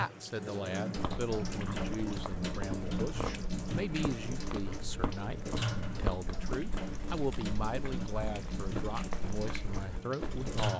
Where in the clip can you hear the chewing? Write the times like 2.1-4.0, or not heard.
0.9-10.6.